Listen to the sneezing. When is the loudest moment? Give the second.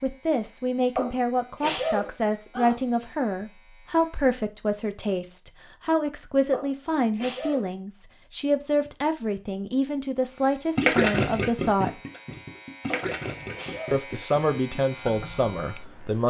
2 s.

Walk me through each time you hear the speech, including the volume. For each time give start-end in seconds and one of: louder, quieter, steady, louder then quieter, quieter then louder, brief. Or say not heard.
0.0-11.9 steady
13.9-16.2 brief.